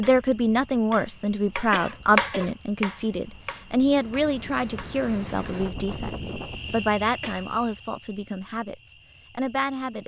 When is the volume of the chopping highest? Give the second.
2 s.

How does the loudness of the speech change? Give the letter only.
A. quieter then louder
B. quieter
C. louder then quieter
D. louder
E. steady
B.